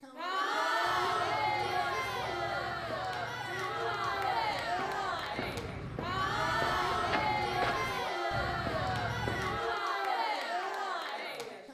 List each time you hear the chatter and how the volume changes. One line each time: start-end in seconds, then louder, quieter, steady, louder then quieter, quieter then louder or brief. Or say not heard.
0.0-11.6 steady.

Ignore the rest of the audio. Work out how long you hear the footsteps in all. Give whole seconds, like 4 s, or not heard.
9 s.